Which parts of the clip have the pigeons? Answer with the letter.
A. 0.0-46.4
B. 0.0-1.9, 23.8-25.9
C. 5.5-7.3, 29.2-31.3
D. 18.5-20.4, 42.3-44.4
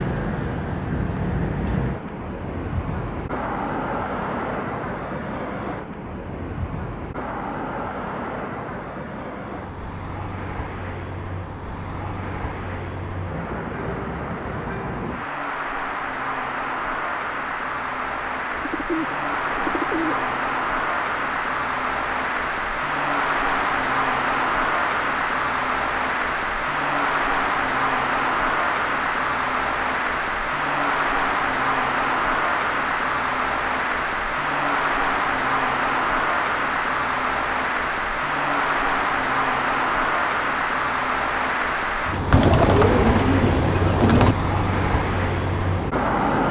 D.